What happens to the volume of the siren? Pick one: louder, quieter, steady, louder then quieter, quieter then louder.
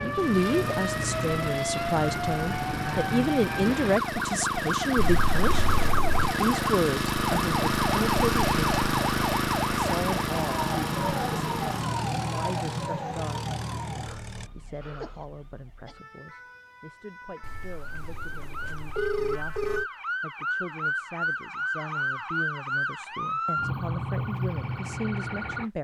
quieter then louder.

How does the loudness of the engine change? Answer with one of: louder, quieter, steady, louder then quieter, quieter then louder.
louder then quieter.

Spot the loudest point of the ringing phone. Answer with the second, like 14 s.
19 s.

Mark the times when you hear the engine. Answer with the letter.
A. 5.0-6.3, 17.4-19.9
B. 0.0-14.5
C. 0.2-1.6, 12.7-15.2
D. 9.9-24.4
B.